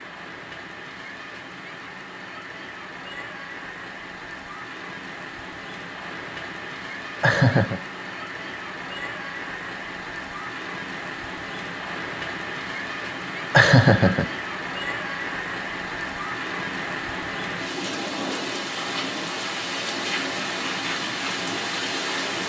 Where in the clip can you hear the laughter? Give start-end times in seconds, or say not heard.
7.2-7.8, 13.5-14.3.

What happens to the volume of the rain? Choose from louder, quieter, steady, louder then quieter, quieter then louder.
louder.